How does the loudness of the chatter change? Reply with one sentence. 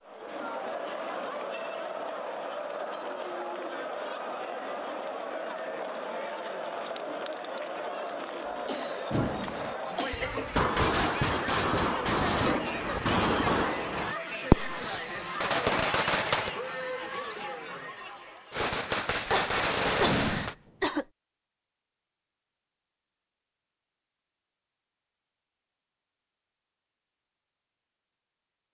The loudness of the chatter stays about the same.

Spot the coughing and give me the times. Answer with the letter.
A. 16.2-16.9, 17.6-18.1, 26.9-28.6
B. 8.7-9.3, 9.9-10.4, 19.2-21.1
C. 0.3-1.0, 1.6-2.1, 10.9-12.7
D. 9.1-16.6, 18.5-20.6
B.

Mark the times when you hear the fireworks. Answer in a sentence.
The fireworks can be heard from 9.1 to 16.6 s and from 18.5 to 20.6 s.